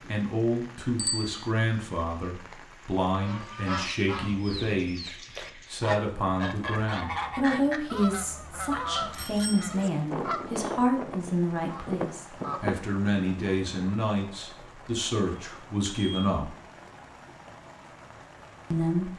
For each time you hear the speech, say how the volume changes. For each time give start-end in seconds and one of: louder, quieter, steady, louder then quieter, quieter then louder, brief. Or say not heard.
0.1-16.6 steady
18.7-19.1 brief.